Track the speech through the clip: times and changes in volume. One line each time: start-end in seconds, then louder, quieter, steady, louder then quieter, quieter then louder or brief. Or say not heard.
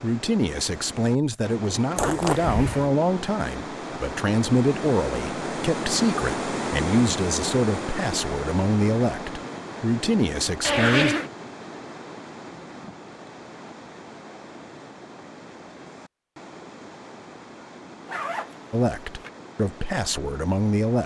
0.0-11.2 steady
18.7-21.0 brief.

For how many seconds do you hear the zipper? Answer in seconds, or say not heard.
3 s.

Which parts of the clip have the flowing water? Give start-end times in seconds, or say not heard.
0.0-21.0.